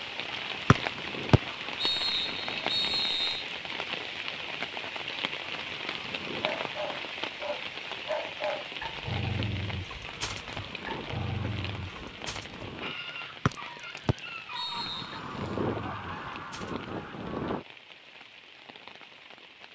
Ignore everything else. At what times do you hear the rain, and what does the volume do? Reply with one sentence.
The rain can be heard from 0.0 to 19.6 s, getting quieter.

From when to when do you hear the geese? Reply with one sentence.
The geese can be heard from 0.3 to 3.1 s, from 5.4 to 7.0 s, from 10.1 to 12.9 s and from 14.7 to 17.6 s.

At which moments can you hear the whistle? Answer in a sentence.
The whistle can be heard from 0.7 to 3.4 s and from 13.4 to 15.2 s.